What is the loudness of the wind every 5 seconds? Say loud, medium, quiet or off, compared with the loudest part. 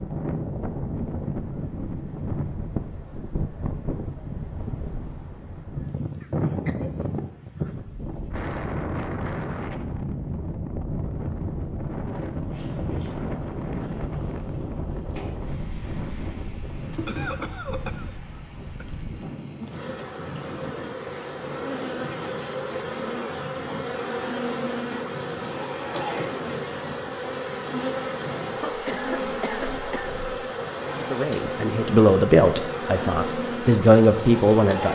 loud, loud, loud, medium, medium, medium, medium.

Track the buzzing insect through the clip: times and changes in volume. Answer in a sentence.
The buzzing insect can be heard from 12.3 to 34.8 s, getting louder.